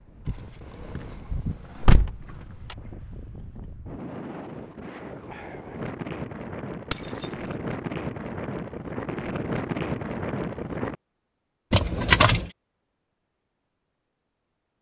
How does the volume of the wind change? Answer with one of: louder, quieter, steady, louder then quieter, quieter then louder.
louder.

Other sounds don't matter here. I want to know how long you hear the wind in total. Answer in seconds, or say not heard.
11 s.